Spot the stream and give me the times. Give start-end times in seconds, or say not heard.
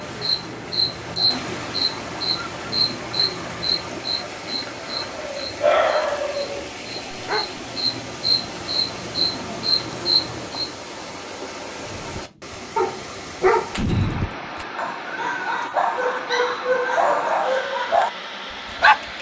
0.0-19.1.